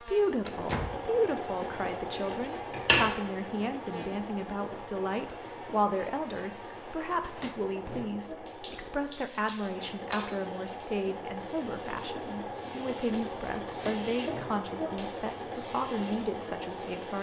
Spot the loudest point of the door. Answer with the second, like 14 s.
1 s.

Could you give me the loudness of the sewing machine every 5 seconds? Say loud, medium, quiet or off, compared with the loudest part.
loud, medium, loud, loud.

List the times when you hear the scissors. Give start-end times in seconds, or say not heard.
1.6-3.1, 8.6-10.2.